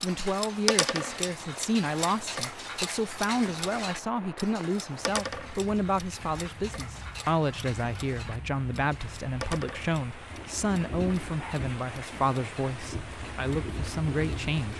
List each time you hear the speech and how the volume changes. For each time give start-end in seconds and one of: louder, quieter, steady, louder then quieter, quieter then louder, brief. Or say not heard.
0.0-14.7 steady.